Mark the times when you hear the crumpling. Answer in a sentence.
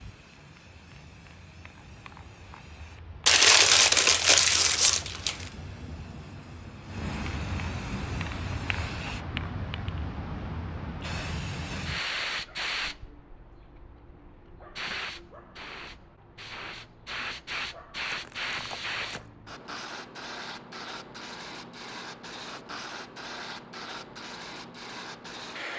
You can hear the crumpling from 3.2 to 5.5 s and from 18.1 to 19.3 s.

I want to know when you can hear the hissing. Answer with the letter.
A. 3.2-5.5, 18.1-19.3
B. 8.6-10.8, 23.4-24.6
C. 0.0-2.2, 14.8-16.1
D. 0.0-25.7
D.